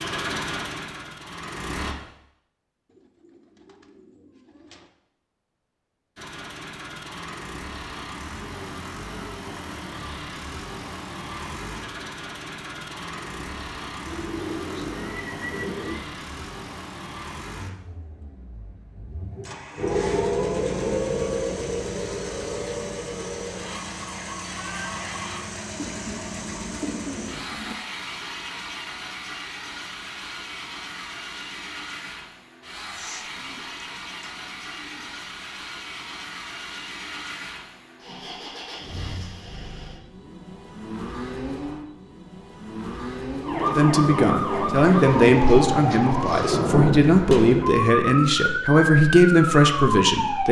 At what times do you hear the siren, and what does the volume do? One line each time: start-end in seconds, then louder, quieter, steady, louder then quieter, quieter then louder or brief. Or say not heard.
19.8-25.4 quieter
43.4-50.4 steady.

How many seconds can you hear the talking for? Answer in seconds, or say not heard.
7 s.